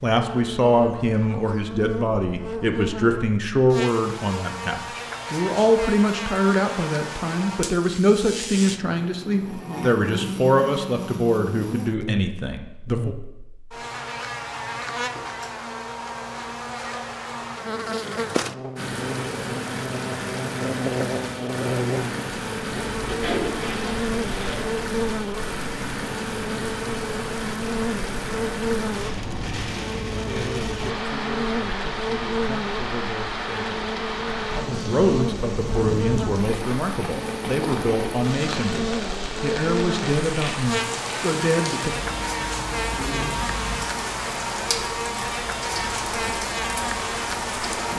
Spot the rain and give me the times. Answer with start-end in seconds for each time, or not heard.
18.8-47.9.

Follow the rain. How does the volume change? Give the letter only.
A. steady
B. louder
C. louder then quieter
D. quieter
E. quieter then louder
A.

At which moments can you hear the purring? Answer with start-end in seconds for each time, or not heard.
not heard.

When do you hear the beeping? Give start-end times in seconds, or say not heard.
not heard.